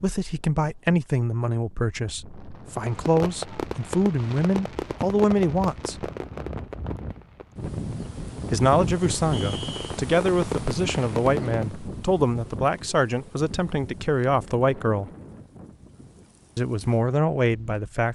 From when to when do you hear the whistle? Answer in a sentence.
The whistle can be heard from 9.3 to 9.9 s.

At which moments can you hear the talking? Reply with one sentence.
You can hear the talking from 0.0 to 6.0 s, from 8.5 to 15.1 s and from 16.6 to 18.1 s.